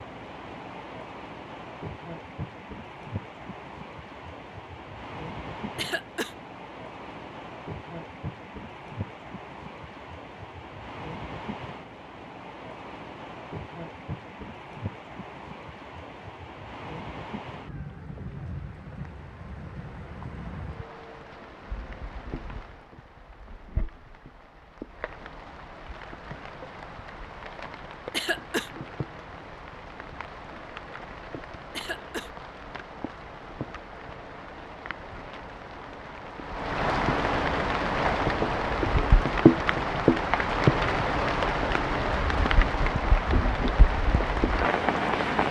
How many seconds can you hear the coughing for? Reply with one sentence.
The coughing can be heard for 2 seconds in total.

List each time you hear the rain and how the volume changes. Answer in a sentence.
The rain can be heard from 0.0 to 45.4 s, getting louder.